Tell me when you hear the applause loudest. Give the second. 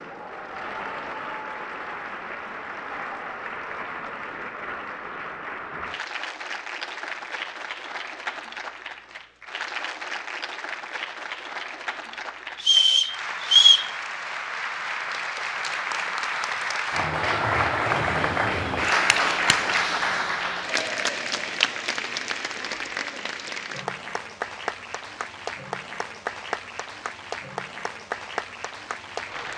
19 s.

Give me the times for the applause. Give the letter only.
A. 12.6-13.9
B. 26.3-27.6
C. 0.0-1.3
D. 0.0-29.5
D.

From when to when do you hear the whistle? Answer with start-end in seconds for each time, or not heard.
12.6-13.9.